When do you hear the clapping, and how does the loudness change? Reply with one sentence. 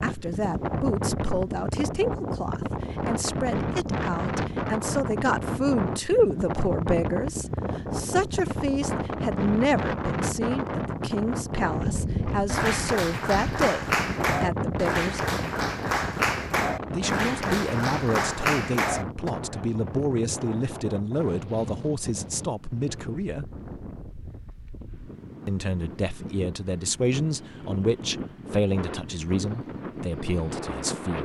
You can hear the clapping from 12.3 to 19.3 s, at a steady volume.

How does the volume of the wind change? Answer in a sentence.
The volume of the wind goes down.